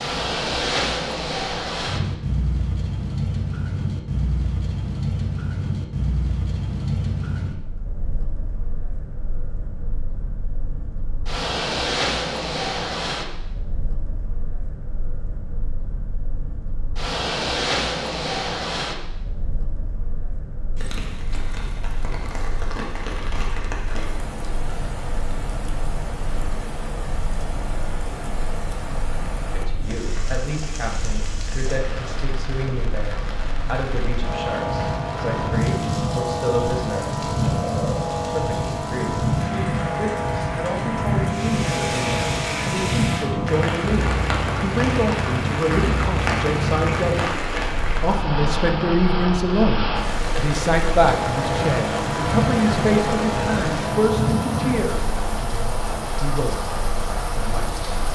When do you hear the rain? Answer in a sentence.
The rain can be heard from 20.8 to 58.1 s.